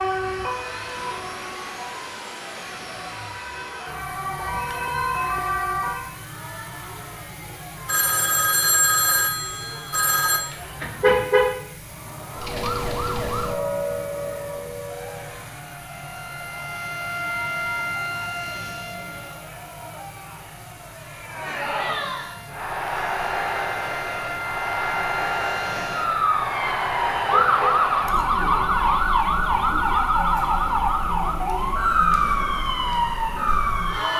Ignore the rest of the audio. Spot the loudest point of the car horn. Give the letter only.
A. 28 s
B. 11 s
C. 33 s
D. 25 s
B.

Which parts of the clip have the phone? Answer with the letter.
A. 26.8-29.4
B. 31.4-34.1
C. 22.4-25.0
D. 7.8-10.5
D.